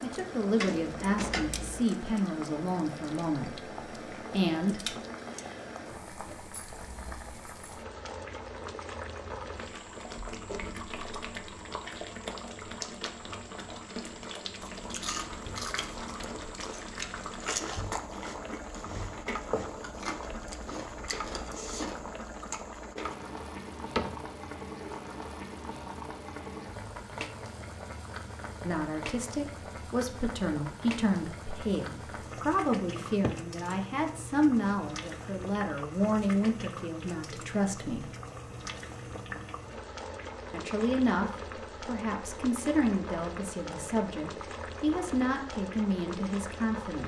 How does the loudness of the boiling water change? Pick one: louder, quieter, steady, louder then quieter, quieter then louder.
steady.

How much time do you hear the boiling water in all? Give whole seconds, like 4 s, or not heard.
47 s.